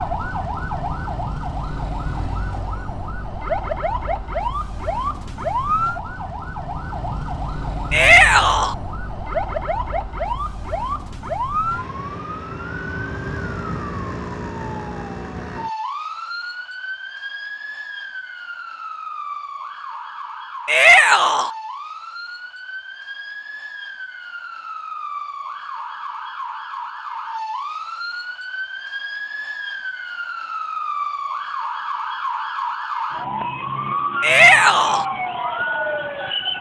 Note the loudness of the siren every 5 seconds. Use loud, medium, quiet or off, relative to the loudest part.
loud, loud, loud, medium, medium, medium, loud, loud.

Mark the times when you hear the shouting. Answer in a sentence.
The shouting can be heard from 7.9 to 8.8 s, from 20.6 to 21.5 s and from 34.2 to 35.0 s.